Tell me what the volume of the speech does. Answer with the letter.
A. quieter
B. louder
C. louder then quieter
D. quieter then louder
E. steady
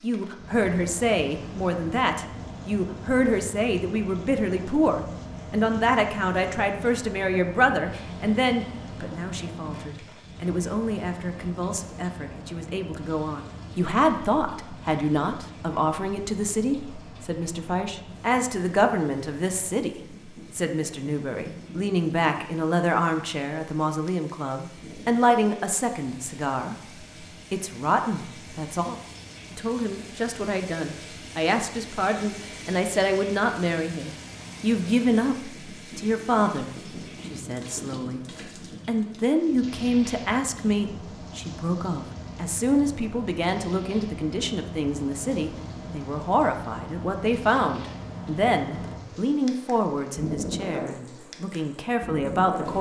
E.